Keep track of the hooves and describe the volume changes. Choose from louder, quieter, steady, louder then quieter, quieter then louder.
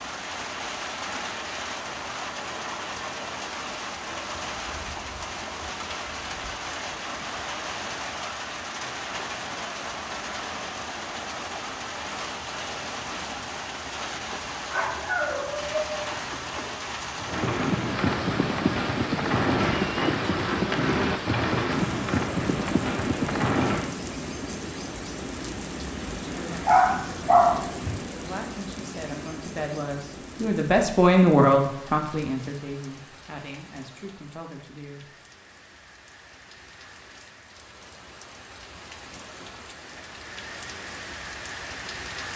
steady.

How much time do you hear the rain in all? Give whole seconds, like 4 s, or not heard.
42 s.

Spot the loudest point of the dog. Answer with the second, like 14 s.
27 s.